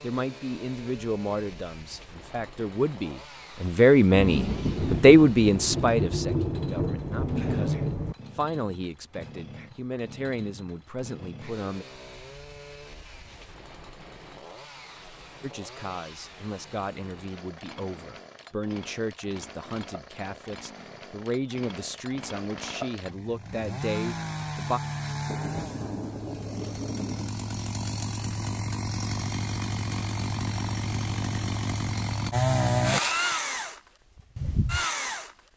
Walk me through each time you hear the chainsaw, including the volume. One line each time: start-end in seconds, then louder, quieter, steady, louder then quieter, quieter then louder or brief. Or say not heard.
0.0-35.3 louder.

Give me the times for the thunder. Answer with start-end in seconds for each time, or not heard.
4.1-8.2, 25.2-27.3.